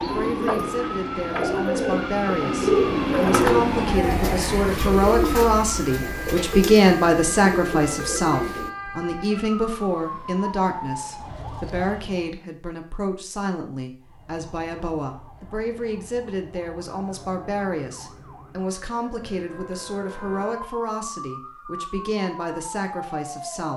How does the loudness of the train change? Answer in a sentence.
The volume of the train goes up, then down.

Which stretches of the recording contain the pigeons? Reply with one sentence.
The pigeons can be heard from 0.0 to 8.7 s.